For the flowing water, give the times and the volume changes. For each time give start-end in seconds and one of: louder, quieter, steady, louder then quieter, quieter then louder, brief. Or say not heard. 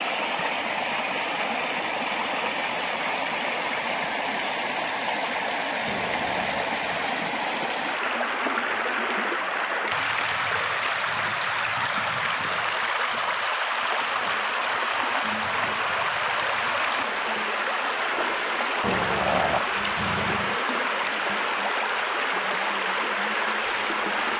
0.0-24.3 steady.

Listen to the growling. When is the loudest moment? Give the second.
19 s.